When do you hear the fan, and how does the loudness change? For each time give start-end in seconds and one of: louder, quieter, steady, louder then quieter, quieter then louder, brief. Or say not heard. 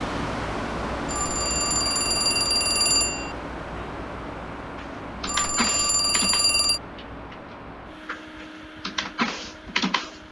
0.0-10.2 quieter.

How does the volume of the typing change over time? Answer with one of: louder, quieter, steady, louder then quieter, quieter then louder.
quieter then louder.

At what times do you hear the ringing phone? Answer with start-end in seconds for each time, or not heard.
1.1-3.4, 5.2-6.8.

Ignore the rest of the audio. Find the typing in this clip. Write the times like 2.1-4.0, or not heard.
4.8-10.2.